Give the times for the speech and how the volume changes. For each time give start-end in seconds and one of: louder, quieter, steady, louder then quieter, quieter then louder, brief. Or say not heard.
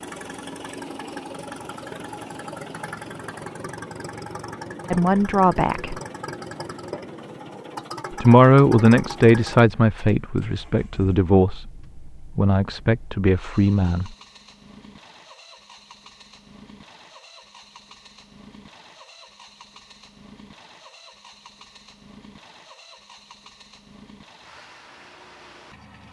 4.9-6.0 brief
8.1-14.1 quieter.